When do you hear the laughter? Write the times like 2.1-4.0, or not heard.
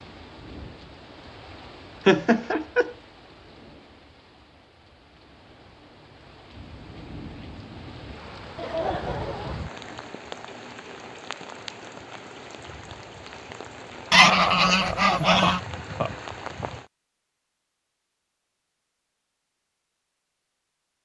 2.0-3.0, 8.6-10.1, 14.2-16.1.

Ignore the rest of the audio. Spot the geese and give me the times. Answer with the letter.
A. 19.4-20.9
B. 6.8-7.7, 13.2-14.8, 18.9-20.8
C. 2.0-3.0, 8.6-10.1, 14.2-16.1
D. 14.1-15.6
D.